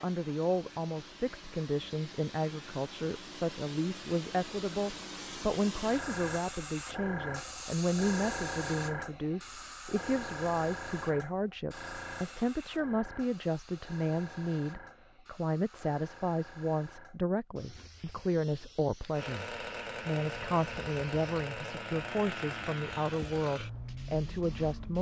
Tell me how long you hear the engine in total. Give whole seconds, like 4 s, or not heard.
6 s.